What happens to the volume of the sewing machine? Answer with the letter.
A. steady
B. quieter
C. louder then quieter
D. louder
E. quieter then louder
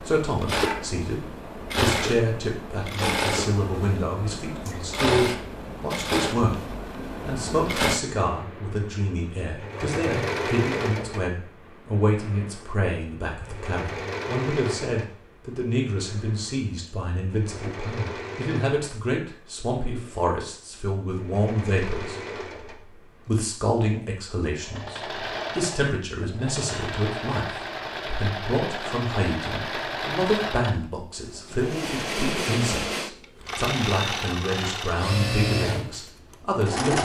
E.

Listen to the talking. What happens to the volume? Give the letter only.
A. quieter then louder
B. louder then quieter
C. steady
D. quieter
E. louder
C.